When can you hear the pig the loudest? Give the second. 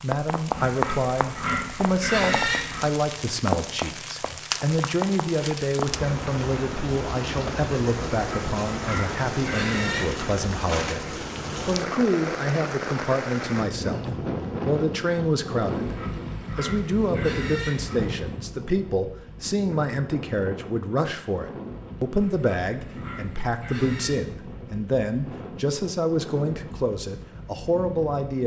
2 s.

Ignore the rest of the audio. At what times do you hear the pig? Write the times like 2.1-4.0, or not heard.
0.5-3.0, 8.2-10.3, 15.8-18.1, 22.1-24.2.